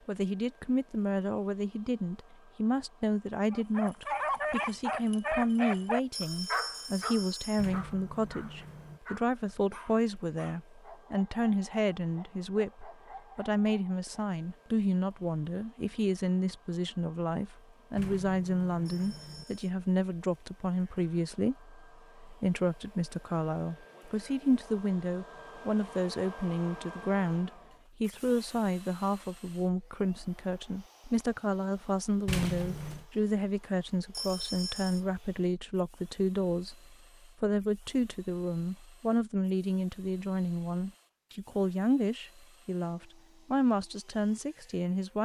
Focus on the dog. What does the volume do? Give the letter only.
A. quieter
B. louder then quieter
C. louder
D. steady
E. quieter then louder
A.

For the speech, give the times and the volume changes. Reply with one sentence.
The speech can be heard from 0.1 to 45.2 s, at a steady volume.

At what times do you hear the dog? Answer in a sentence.
You can hear the dog from 3.5 to 14.3 s.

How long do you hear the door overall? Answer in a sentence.
You can hear the door for 4 seconds altogether.